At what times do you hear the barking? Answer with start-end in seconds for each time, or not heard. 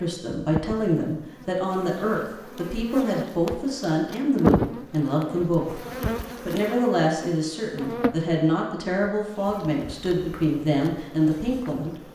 not heard.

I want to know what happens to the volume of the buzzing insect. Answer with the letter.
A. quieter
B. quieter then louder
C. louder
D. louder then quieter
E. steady
D.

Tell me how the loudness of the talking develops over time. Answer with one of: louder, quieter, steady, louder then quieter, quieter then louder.
steady.